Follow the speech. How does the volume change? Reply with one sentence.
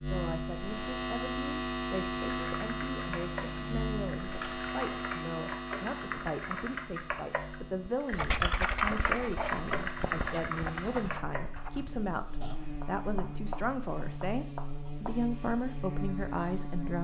The volume of the speech goes up.